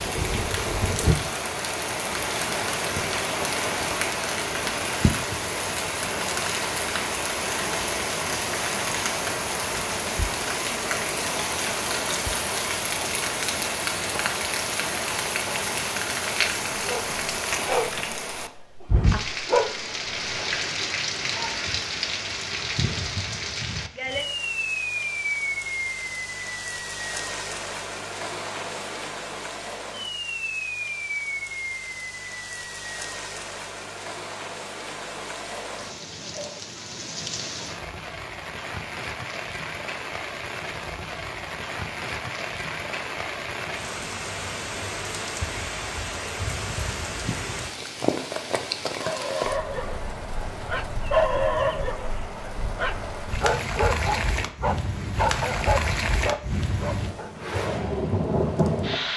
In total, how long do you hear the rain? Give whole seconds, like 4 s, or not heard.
59 s.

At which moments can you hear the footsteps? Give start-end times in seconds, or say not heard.
not heard.